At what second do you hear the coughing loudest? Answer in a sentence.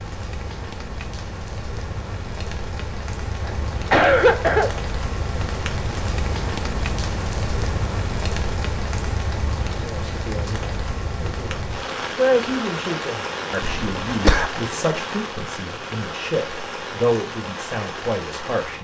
The volume of the coughing peaks at 4 seconds.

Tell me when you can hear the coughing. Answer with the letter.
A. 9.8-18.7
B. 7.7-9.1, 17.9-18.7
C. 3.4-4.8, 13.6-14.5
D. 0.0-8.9
C.